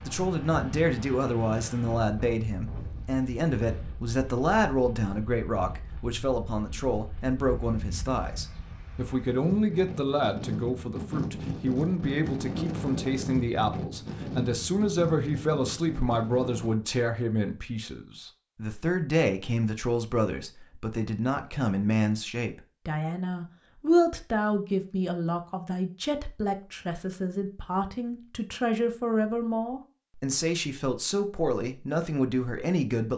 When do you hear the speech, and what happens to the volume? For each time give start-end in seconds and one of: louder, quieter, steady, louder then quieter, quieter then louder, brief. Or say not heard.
0.1-33.1 steady.